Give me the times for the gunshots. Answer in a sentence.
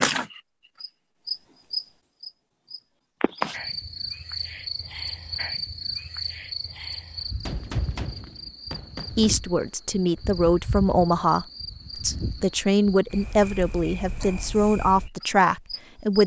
You can hear the gunshots from 7.5 to 9.3 s.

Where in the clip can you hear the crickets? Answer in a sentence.
The crickets can be heard from 0.0 to 16.2 s.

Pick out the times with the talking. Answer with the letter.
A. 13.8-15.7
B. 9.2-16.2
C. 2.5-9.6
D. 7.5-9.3
B.